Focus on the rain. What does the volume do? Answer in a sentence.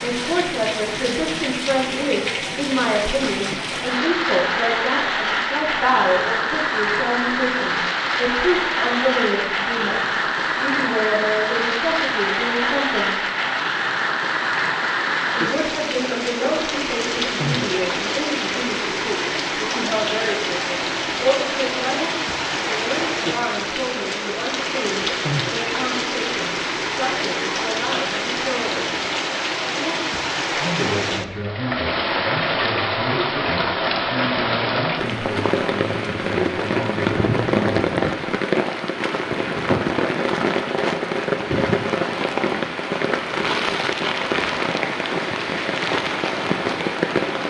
The volume of the rain stays about the same.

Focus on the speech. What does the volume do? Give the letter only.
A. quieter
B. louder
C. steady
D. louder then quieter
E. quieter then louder
A.